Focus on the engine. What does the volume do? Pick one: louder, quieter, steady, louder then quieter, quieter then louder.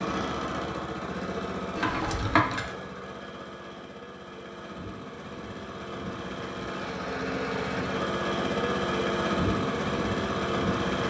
quieter then louder.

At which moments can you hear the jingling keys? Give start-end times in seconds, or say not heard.
1.8-2.6.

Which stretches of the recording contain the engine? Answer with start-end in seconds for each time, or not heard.
0.0-11.0.